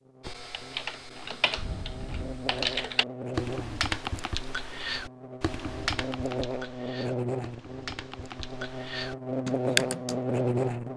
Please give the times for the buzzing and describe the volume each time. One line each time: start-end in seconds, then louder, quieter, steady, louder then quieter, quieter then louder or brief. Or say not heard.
0.0-10.9 louder.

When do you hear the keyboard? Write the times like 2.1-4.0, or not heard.
0.2-10.2.